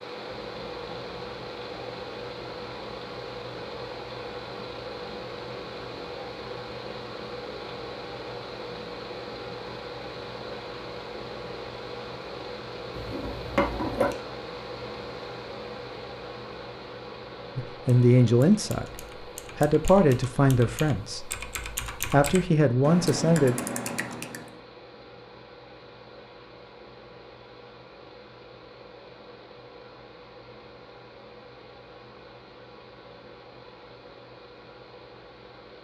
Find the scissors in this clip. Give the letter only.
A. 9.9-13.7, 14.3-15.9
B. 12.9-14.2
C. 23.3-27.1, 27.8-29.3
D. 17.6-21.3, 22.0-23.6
B.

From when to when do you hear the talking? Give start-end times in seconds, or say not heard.
17.6-21.3, 22.0-23.6.